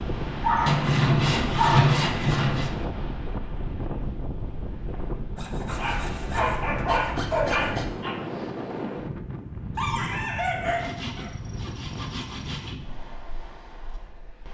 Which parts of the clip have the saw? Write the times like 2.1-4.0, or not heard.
0.7-2.7, 5.3-7.8, 10.8-12.8.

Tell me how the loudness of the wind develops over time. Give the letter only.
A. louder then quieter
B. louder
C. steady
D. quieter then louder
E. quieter
E.